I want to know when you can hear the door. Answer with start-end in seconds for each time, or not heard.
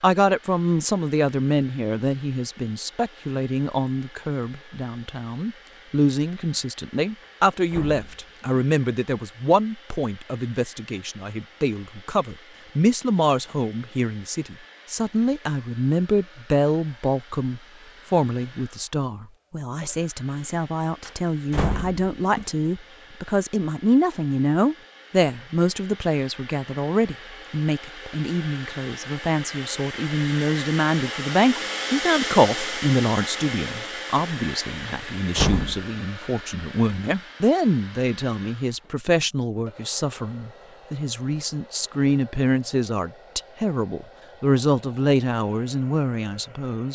7.2-8.7, 21.1-22.5, 34.9-35.9.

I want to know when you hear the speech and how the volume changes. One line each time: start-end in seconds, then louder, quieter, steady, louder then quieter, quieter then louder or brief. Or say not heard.
0.0-46.9 steady.